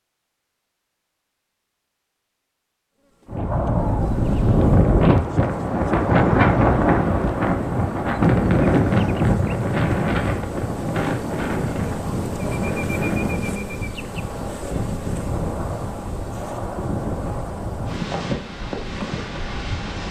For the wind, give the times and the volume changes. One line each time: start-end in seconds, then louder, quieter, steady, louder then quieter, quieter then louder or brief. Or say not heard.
3.2-20.0 quieter.